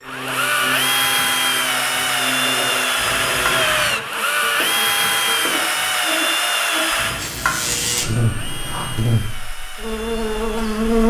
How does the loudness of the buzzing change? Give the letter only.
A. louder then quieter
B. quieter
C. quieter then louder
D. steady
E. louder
E.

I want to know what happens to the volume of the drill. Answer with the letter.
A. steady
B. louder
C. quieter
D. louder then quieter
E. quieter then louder
C.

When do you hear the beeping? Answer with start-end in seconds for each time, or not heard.
3.0-4.0, 7.0-8.9.